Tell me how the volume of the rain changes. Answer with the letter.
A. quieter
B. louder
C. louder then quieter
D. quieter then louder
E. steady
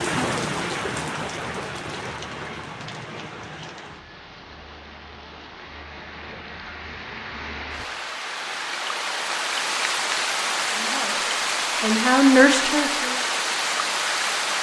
D.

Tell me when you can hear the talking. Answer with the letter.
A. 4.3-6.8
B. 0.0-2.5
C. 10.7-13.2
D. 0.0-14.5
C.